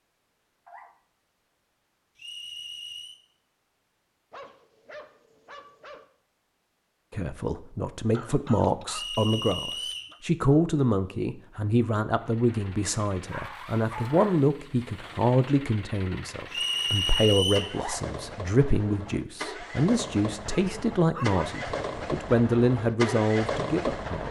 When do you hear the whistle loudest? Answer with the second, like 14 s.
17 s.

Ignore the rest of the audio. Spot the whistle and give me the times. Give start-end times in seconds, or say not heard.
2.1-3.2, 8.9-10.1, 16.5-17.8.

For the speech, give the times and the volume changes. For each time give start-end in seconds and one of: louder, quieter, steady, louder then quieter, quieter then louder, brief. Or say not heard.
7.1-24.2 steady.